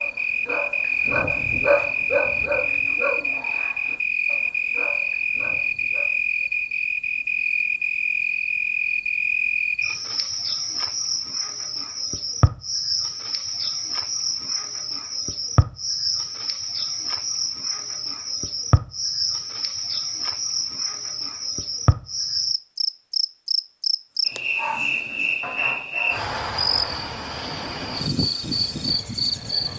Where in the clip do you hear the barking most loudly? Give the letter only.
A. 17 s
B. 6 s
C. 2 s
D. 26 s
C.